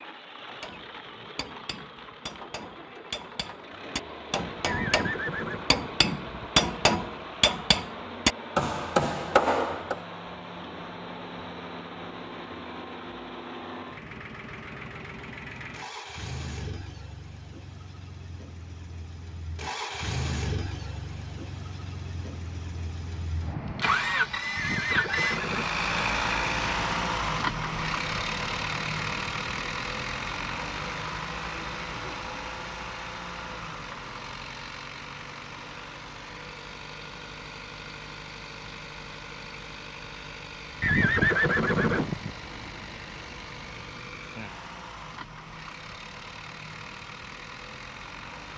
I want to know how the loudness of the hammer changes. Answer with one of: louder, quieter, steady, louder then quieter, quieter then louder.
louder.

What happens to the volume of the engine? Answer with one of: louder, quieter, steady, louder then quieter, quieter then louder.
louder then quieter.